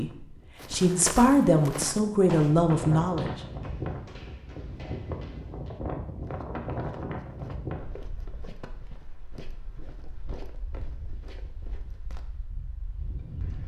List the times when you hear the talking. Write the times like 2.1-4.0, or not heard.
0.0-3.3.